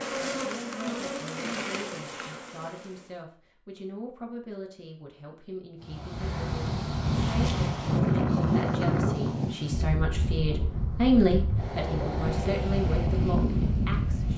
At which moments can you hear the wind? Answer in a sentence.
The wind can be heard from 5.8 to 14.3 s.